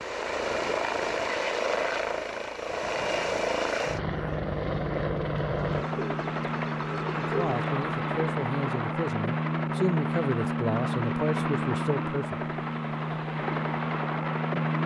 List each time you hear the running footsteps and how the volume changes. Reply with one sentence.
You can't hear the running footsteps here.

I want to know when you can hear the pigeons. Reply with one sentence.
The pigeons can be heard from 5.5 to 7.8 s.